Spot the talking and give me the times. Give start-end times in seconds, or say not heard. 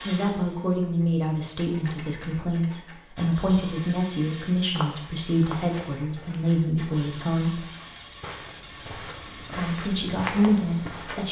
0.0-7.6, 9.4-11.2.